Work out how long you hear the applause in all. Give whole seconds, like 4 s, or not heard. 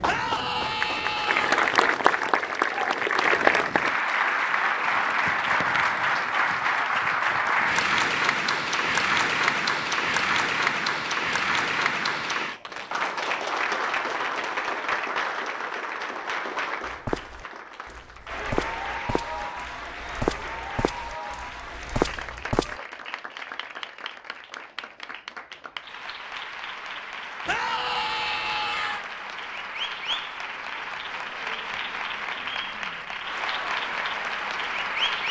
35 s.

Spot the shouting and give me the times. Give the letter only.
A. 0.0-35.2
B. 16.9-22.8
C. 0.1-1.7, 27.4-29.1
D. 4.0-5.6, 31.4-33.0
C.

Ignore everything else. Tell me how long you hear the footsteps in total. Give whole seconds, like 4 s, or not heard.
6 s.